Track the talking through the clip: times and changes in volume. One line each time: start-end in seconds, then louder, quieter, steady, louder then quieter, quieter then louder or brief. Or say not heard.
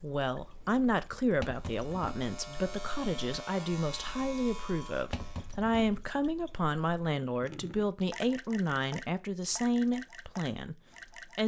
0.0-11.4 steady.